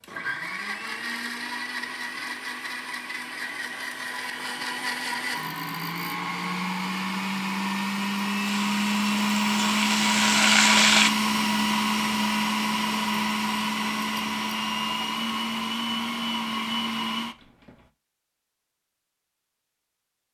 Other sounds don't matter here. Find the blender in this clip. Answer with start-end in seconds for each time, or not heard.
0.0-17.9.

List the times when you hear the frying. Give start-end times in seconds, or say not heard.
8.4-11.1.